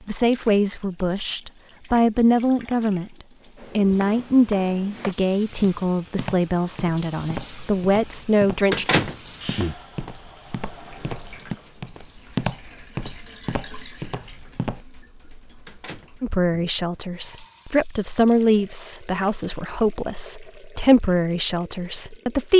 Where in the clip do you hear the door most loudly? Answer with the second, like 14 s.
9 s.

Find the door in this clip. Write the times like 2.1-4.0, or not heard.
8.7-9.8, 15.7-16.7.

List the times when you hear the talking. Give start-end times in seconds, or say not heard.
0.1-8.9, 16.2-22.5.